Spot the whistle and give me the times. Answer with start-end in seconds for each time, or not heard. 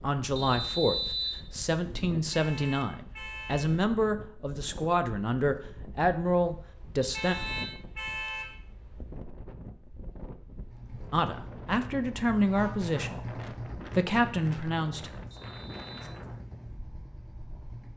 0.3-1.4, 7.0-7.8, 15.3-16.1.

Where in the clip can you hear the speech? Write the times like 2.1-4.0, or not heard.
0.0-7.3, 11.1-15.1.